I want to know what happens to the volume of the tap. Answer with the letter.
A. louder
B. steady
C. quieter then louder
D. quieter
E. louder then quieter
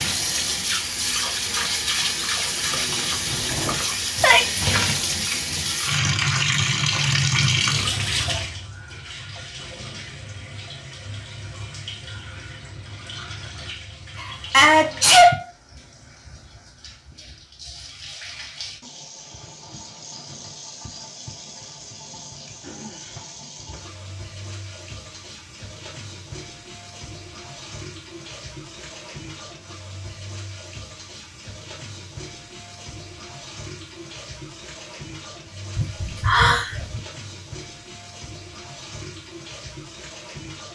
D.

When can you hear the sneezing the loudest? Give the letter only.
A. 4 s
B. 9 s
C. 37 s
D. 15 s
D.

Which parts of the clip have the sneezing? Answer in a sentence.
The sneezing can be heard from 3.2 to 4.7 s, from 14.2 to 15.4 s and from 35.8 to 37.0 s.